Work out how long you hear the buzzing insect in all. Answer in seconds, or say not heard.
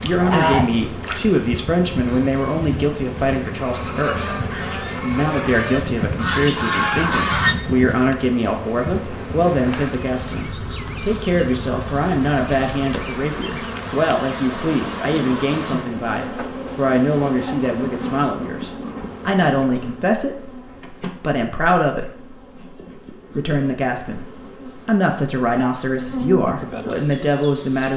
28 s.